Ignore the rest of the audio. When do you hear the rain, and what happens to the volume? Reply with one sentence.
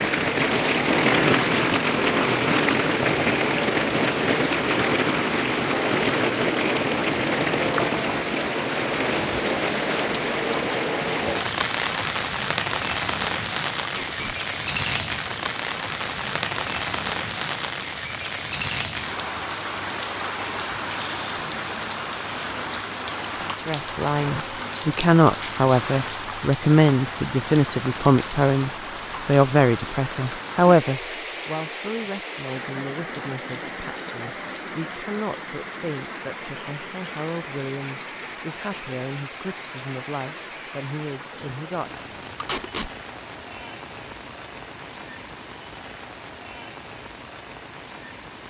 You can hear the rain from 0.0 to 48.4 s, getting quieter.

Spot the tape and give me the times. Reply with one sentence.
The tape can be heard from 13.8 to 14.3 s and from 42.4 to 42.9 s.